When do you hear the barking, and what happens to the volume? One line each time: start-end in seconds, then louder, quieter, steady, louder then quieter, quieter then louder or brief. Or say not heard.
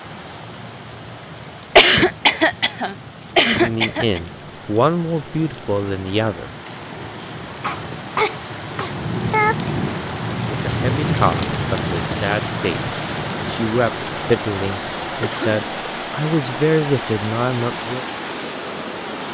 not heard.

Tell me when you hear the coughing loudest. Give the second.
2 s.